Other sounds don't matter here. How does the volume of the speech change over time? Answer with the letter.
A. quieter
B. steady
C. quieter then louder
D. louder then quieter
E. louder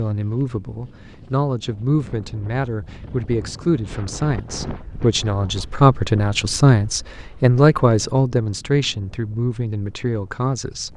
D.